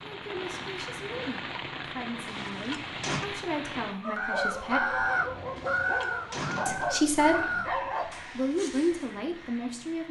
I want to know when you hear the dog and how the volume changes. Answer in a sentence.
You can hear the dog from 4.0 to 9.1 s, at a steady volume.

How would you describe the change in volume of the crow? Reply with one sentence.
The loudness of the crow goes down.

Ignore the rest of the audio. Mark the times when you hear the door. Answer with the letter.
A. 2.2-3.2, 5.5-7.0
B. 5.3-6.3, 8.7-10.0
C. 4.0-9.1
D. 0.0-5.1
A.